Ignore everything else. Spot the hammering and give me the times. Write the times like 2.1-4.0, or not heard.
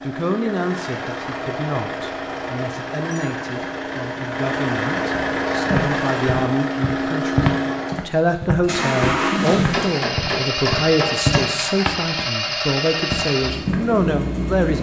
9.4-11.6.